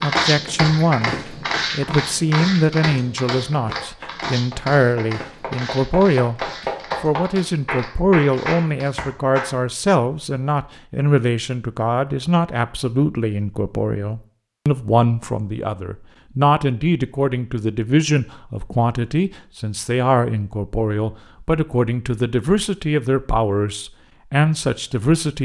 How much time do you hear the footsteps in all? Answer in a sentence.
The footsteps can be heard for 9 seconds in total.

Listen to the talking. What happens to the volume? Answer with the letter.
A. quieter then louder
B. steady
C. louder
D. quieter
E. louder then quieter
B.